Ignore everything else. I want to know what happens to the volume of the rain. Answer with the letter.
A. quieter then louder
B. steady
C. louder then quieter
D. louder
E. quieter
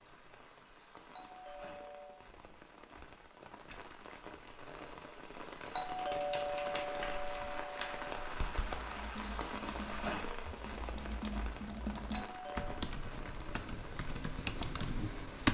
C.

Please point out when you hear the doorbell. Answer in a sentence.
You can hear the doorbell from 1.1 to 2.2 s, from 5.7 to 8.2 s and from 12.1 to 12.8 s.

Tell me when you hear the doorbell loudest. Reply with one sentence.
The loudest moment of the doorbell is at 6 seconds.